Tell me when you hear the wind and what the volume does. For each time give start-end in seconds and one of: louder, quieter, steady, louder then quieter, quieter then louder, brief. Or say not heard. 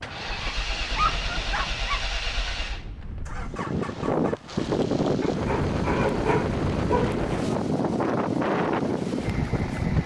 0.0-10.0 louder.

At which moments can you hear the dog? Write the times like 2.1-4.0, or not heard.
0.9-2.1, 5.2-7.2.